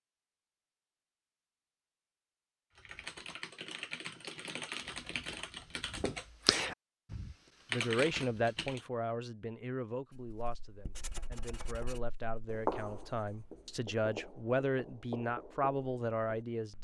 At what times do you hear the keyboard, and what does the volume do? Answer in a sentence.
The keyboard can be heard from 2.8 to 8.9 s, getting louder.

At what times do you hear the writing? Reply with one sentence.
You can hear the writing from 10.1 to 16.7 s.